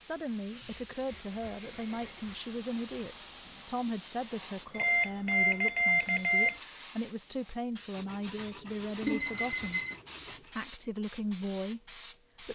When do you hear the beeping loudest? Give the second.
6 s.